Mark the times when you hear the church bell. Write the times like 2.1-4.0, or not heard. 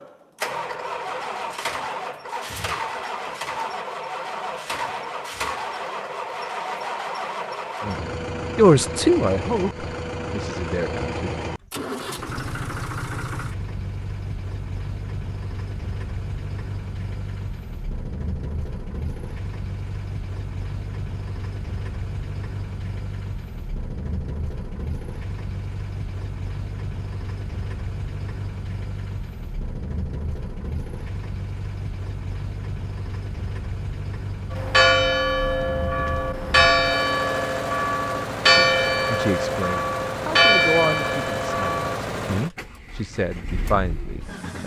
34.5-42.0.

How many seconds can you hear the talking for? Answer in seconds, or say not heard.
10 s.